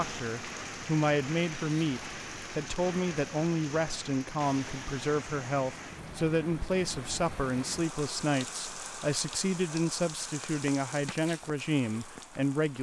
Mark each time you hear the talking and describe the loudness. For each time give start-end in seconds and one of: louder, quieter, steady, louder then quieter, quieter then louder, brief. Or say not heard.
0.0-12.7 steady.